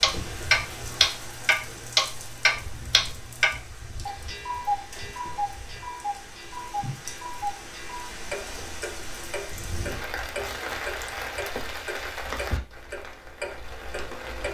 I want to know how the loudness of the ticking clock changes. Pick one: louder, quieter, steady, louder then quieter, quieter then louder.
quieter.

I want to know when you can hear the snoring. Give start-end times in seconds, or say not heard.
not heard.